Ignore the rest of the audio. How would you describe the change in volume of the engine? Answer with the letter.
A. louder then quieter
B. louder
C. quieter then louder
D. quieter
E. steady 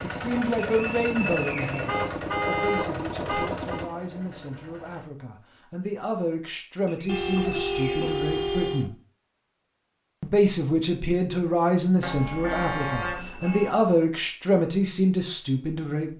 D.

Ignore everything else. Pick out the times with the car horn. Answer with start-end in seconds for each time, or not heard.
1.9-3.9, 7.0-8.9, 12.0-13.7.